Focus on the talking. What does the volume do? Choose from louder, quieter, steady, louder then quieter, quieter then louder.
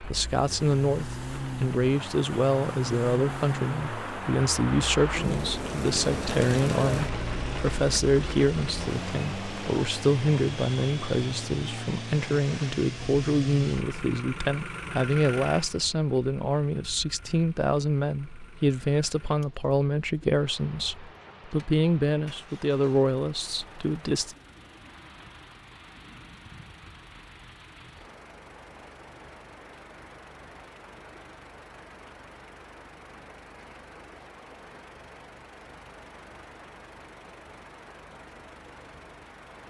steady.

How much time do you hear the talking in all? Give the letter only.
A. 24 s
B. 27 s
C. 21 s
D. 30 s
A.